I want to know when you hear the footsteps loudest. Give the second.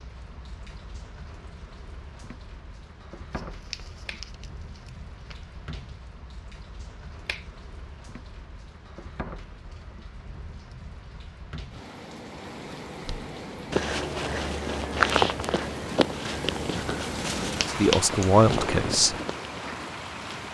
15 s.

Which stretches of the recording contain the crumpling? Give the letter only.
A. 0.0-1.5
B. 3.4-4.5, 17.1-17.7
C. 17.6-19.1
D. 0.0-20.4
B.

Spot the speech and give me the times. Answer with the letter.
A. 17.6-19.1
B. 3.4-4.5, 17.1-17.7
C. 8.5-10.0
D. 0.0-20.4
A.